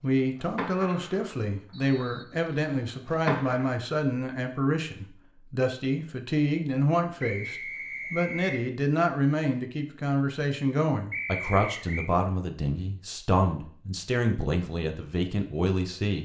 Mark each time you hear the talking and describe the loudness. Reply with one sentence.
The talking can be heard from 0.0 to 16.2 s, at a steady volume.